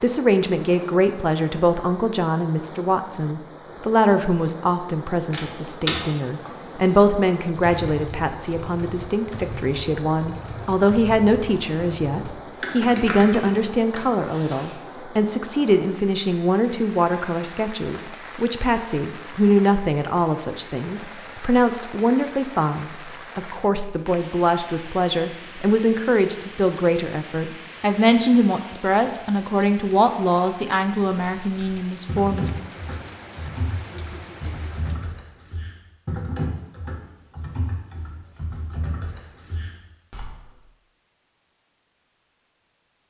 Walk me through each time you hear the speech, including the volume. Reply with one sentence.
The speech can be heard from 0.0 to 32.5 s, at a steady volume.